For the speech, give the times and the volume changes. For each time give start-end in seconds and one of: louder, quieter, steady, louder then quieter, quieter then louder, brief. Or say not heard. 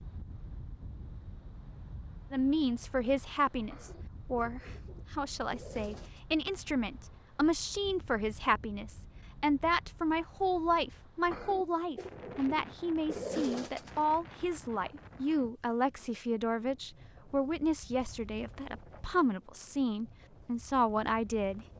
2.3-21.6 steady.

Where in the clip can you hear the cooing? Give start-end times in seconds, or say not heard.
3.7-6.2, 11.3-13.9.